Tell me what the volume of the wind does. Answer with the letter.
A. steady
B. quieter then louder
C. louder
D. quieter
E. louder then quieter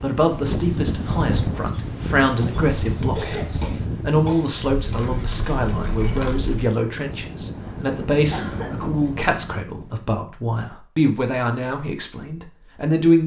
D.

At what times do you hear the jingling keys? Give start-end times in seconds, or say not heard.
4.5-6.6.